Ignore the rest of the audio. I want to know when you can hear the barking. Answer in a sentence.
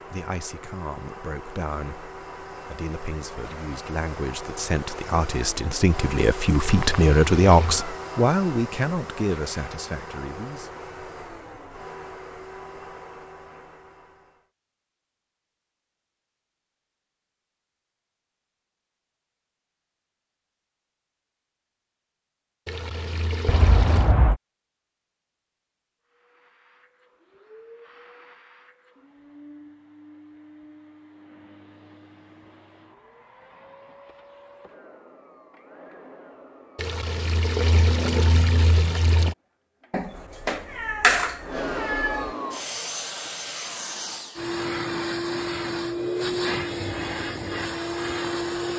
You can't hear the barking here.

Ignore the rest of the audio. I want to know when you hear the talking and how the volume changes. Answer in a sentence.
You can hear the talking from 0.0 to 10.7 s, getting louder then quieter.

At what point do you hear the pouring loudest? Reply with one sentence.
The volume of the pouring peaks at 38 seconds.